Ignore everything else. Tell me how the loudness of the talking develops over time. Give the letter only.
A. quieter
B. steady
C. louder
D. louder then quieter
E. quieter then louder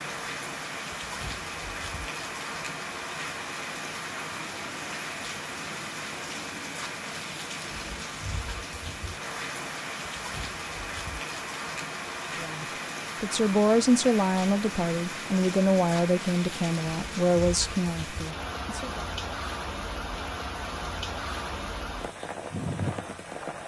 A.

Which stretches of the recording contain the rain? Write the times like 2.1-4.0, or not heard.
0.0-23.6.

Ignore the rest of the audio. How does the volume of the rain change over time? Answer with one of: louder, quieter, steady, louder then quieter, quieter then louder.
steady.